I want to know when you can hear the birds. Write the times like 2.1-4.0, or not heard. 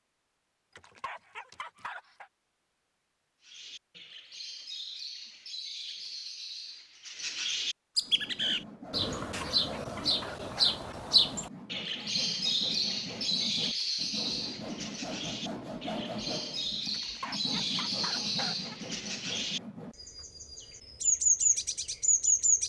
3.5-22.6.